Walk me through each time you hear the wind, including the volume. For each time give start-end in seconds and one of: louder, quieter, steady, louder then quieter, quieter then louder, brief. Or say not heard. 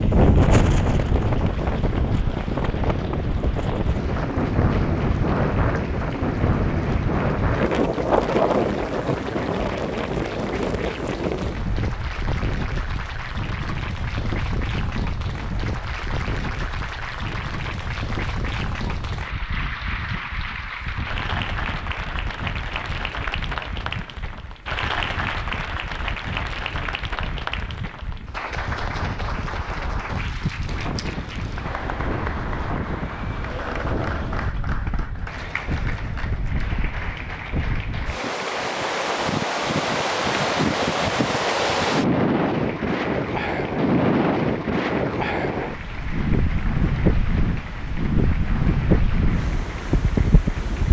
0.0-50.8 quieter then louder.